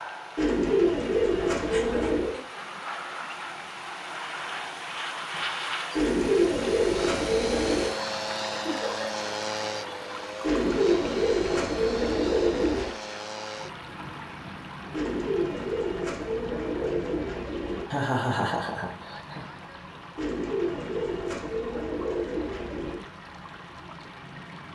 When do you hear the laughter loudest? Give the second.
18 s.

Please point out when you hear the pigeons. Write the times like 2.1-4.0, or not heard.
0.3-2.4, 6.0-8.0, 10.4-12.9, 14.9-17.9, 20.1-23.1.